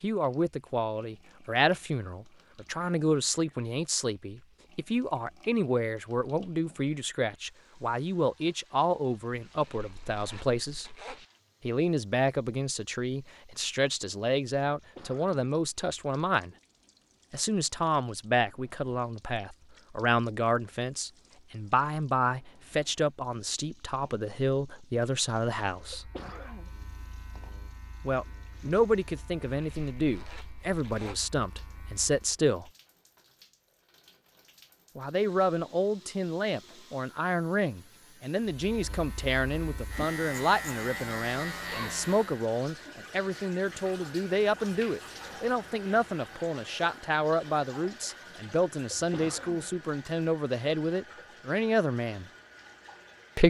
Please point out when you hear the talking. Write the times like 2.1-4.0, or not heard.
0.0-10.9, 11.7-16.5, 17.3-26.1, 28.1-32.7, 35.0-52.2.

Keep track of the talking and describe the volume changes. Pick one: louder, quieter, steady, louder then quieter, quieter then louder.
steady.